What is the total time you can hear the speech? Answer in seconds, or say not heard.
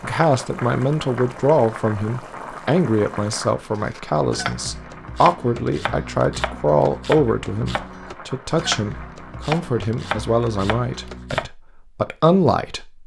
13 s.